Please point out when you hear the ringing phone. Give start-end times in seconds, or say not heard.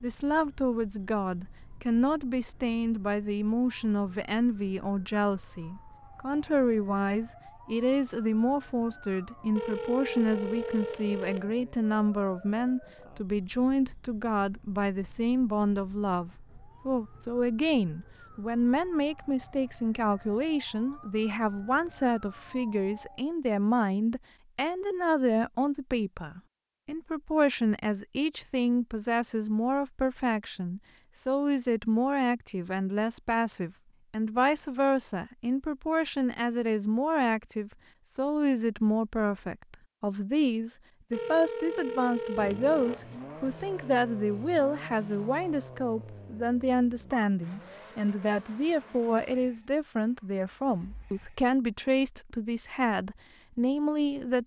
9.6-11.5, 41.1-43.0.